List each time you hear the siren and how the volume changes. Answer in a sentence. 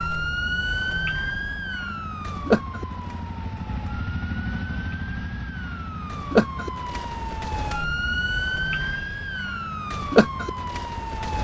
You can hear the siren from 0.0 to 11.4 s, at a steady volume.